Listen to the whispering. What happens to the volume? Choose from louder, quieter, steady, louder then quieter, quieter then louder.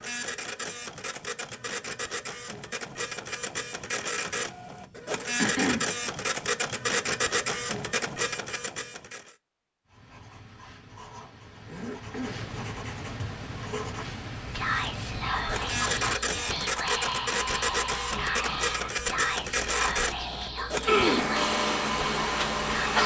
steady.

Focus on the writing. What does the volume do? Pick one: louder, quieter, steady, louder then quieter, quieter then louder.
louder.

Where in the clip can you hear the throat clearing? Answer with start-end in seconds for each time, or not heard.
5.3-6.0, 11.7-12.6, 20.9-21.3.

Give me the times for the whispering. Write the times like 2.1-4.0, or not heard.
14.4-23.0.